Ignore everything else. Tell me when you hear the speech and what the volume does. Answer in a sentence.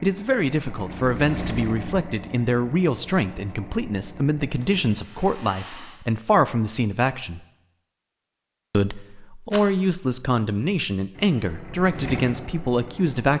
You can hear the speech from 0.0 to 7.4 s, at a steady volume; and from 8.7 to 13.3 s, at a steady volume.